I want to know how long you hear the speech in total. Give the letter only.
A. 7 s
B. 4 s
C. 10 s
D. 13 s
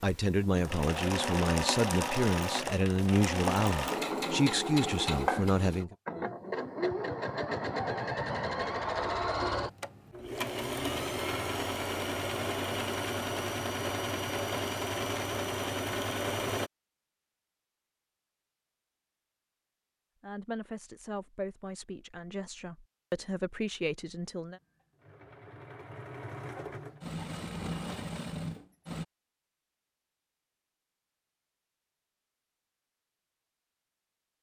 C.